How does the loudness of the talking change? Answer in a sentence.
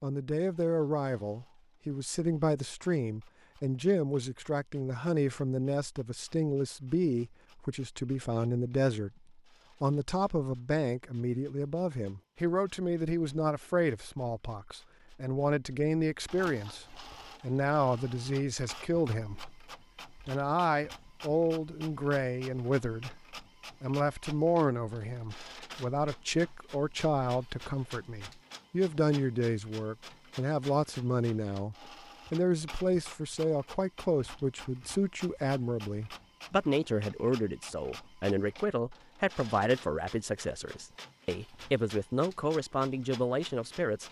The volume of the talking stays about the same.